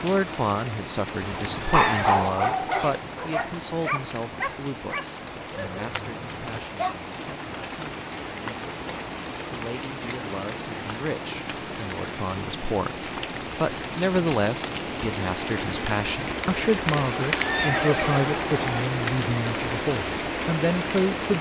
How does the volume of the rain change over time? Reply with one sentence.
The loudness of the rain goes up.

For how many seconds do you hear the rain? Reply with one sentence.
The rain can be heard for 21 seconds in total.